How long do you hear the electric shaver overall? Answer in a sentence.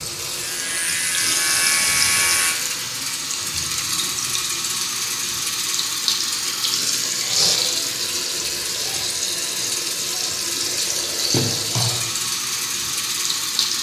You can hear the electric shaver for 2 seconds altogether.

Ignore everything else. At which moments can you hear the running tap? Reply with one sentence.
You can hear the running tap from 0.0 to 13.7 s.